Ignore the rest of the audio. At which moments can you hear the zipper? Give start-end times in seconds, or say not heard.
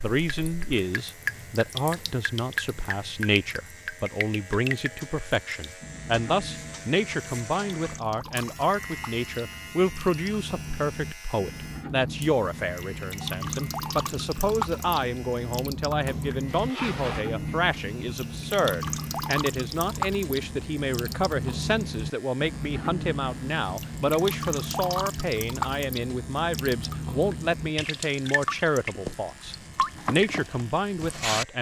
16.4-17.3.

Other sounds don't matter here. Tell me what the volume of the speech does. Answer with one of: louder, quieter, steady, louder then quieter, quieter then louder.
steady.